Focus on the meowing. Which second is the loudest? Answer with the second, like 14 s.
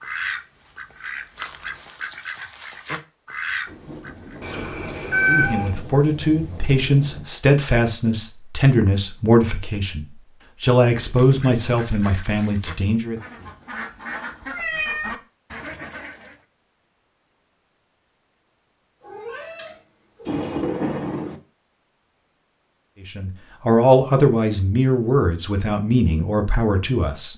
5 s.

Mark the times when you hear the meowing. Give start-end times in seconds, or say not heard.
4.4-5.7, 14.5-15.2, 19.0-20.3.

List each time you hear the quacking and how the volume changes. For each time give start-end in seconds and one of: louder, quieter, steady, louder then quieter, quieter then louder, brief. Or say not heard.
0.0-4.4 louder
10.9-16.4 louder.